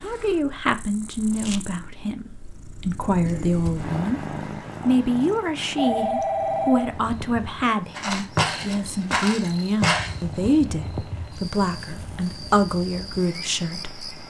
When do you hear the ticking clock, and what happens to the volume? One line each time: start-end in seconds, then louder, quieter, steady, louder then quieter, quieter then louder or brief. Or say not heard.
not heard.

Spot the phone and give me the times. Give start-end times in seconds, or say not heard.
5.8-7.0.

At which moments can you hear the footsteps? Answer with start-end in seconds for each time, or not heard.
8.0-10.2.